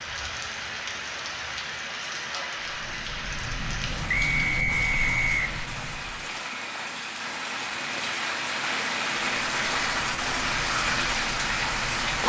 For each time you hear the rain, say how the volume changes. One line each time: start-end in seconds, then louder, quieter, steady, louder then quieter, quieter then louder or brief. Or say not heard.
0.0-12.2 louder.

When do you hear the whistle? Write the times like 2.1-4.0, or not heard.
4.0-5.4.